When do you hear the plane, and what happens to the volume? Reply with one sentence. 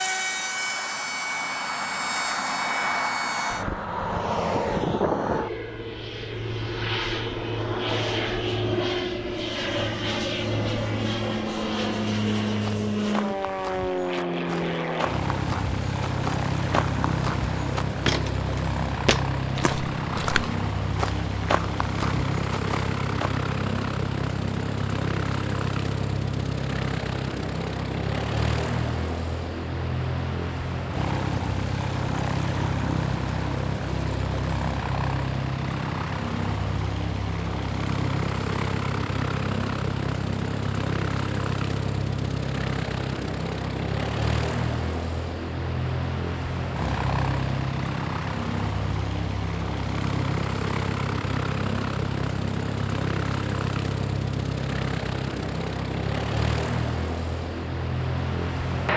The plane can be heard from 0.0 to 58.9 s, at a steady volume.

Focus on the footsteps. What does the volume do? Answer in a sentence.
The volume of the footsteps goes up.